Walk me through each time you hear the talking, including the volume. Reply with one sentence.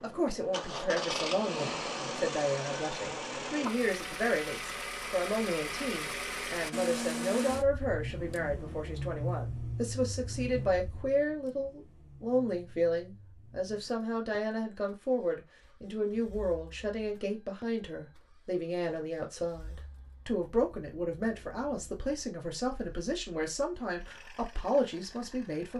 The talking can be heard from 0.0 to 25.7 s, at a steady volume.